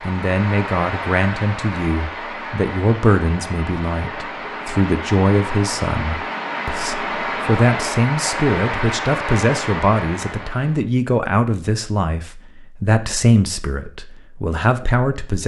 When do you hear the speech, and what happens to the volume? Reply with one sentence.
The speech can be heard from 0.0 to 15.4 s, at a steady volume.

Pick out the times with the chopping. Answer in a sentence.
The chopping can't be heard in this clip.